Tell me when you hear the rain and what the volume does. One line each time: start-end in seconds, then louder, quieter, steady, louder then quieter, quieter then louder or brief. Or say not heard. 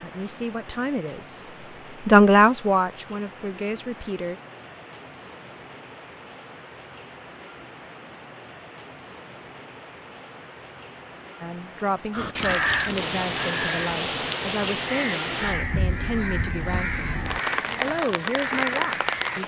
0.0-19.4 louder.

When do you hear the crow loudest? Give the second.
13 s.